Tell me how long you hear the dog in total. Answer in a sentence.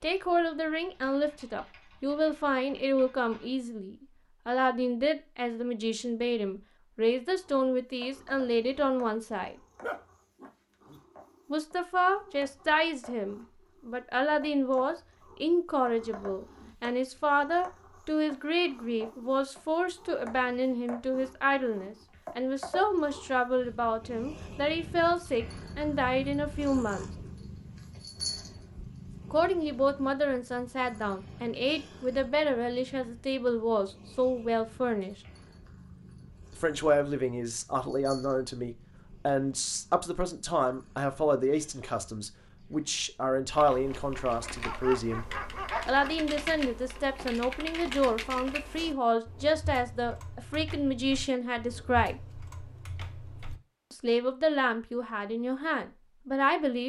The dog can be heard for 3 seconds in total.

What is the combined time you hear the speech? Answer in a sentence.
You can hear the speech for 49 seconds altogether.